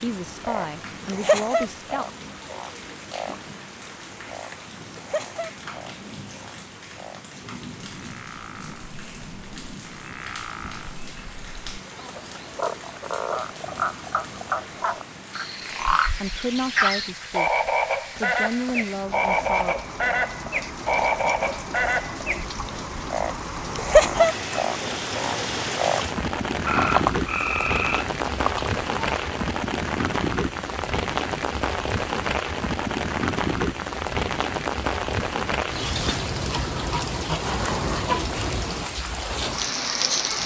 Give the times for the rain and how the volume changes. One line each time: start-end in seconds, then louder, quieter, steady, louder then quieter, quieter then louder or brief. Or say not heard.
0.0-40.4 louder.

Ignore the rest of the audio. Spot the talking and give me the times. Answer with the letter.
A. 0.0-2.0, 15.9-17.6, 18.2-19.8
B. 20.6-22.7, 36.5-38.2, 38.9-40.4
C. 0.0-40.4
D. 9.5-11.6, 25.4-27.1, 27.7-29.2
A.